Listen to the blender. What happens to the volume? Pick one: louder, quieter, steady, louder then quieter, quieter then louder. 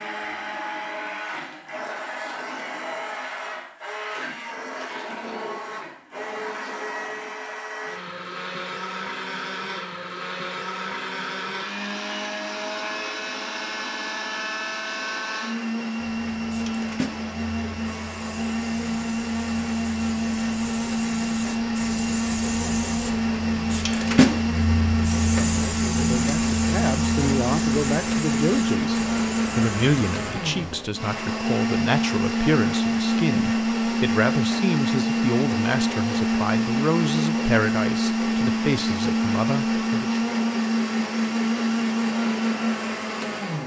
louder.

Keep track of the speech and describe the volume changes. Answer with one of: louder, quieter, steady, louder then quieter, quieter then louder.
steady.